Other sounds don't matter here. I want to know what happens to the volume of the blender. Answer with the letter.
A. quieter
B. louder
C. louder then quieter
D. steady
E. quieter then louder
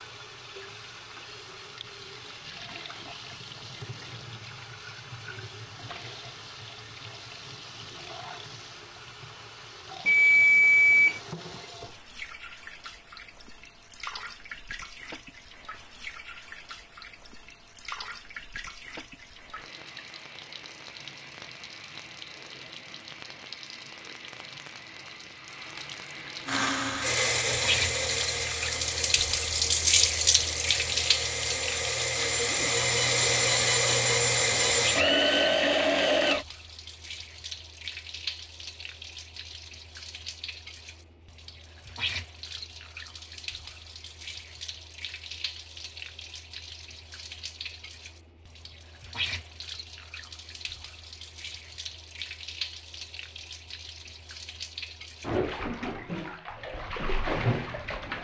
E.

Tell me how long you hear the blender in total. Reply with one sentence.
The blender can be heard for 10 seconds in total.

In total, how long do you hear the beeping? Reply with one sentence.
The beeping can be heard for 3 seconds in total.